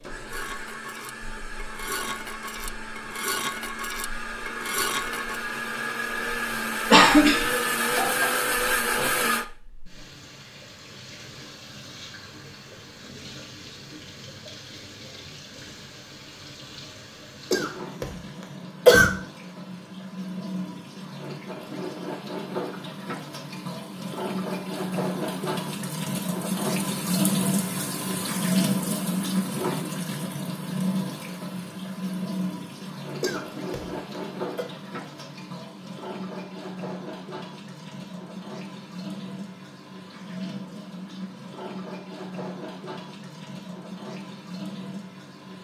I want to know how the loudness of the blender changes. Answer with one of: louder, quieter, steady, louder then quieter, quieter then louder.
louder.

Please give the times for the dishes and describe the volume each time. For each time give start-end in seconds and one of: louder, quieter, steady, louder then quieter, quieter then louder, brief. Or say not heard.
0.3-5.4 louder.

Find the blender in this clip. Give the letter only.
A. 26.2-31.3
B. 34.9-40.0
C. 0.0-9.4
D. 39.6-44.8
C.